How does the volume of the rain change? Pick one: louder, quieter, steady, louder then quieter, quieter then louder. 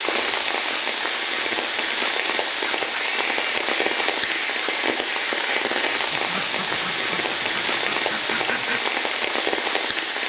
steady.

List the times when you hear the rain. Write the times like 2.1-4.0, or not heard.
0.0-10.2.